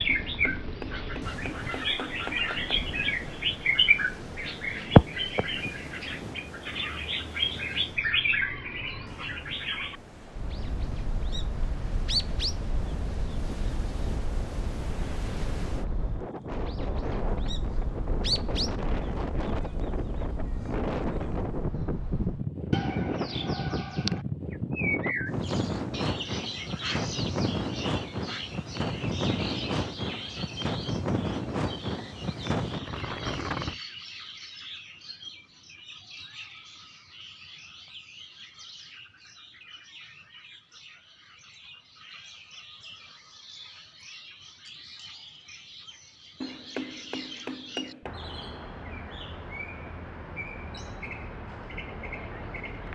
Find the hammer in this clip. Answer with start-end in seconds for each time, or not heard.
0.1-3.0, 46.4-48.1.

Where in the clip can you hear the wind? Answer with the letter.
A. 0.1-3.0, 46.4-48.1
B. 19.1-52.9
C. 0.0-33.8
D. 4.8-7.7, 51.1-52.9
C.